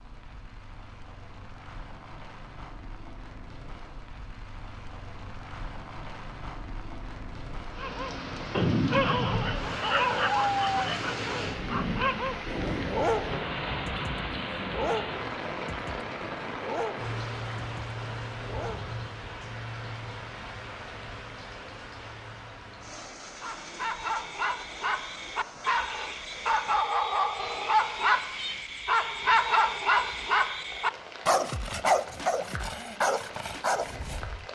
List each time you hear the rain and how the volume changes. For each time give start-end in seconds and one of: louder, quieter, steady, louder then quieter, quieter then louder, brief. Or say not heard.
0.0-34.5 louder then quieter.